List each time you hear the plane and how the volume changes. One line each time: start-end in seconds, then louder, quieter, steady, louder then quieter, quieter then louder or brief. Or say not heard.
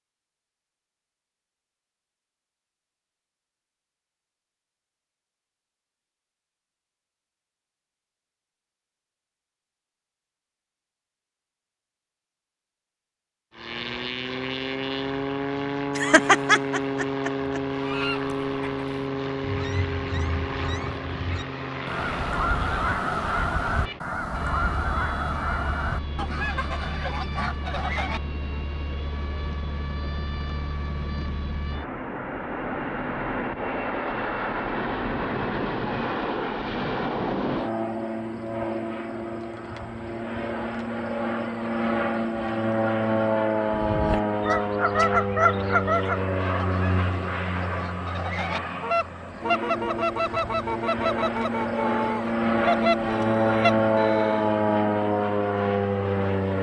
13.5-56.5 quieter then louder.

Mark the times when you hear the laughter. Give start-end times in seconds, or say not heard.
15.9-17.6.